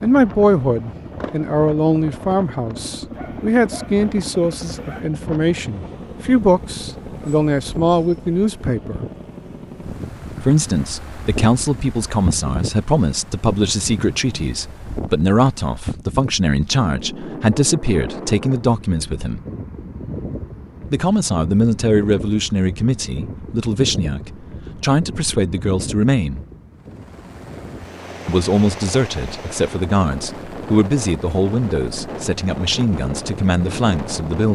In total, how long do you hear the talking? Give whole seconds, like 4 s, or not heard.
30 s.